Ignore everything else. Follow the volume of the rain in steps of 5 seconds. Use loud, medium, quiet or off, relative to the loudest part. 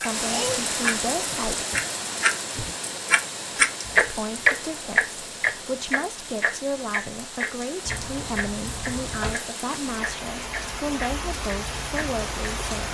loud, medium, loud.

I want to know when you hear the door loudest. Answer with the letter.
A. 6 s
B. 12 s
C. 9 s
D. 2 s
C.